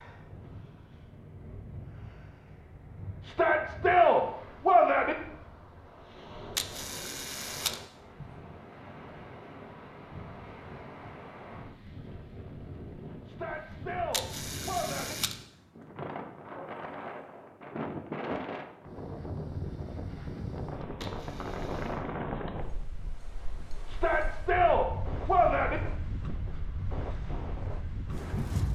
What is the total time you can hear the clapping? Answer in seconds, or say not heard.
not heard.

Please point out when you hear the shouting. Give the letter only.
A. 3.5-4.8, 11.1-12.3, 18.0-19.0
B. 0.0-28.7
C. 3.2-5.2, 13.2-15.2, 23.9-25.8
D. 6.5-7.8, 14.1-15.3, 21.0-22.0
C.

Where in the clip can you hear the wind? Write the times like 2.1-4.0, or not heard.
0.0-28.7.